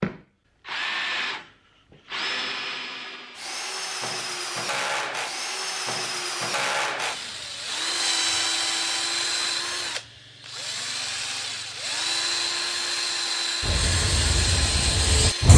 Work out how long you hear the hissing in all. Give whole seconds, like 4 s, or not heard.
2 s.